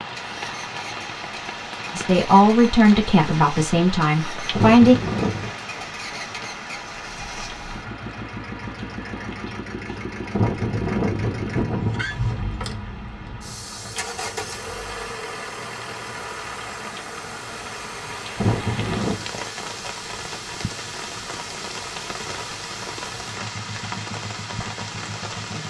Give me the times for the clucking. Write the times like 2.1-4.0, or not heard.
not heard.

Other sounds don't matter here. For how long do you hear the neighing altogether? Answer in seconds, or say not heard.
4 s.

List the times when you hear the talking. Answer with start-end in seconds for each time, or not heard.
1.9-5.0.